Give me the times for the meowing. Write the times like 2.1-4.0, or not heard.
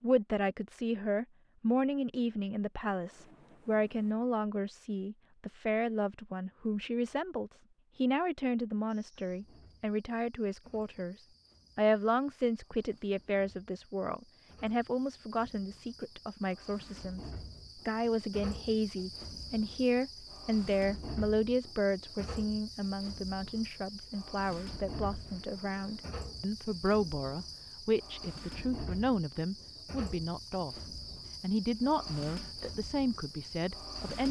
not heard.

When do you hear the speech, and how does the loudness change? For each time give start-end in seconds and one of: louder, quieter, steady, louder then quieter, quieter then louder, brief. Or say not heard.
0.0-34.2 steady.